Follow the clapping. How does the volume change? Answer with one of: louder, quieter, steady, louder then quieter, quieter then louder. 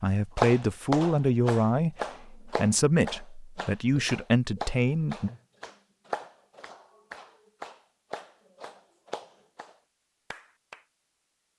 quieter.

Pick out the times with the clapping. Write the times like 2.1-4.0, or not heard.
0.3-10.8.